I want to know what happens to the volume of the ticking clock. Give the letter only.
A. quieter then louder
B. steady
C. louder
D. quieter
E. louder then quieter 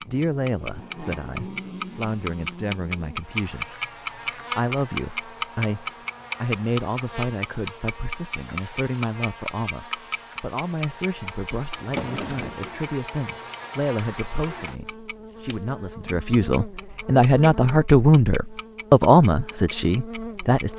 D.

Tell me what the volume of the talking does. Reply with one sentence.
The volume of the talking goes up.